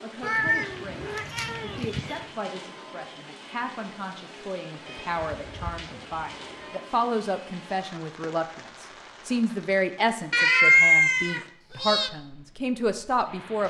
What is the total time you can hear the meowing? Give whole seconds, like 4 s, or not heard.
6 s.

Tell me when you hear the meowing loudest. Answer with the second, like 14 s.
11 s.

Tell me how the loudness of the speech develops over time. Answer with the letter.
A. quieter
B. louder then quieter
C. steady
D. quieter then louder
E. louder
E.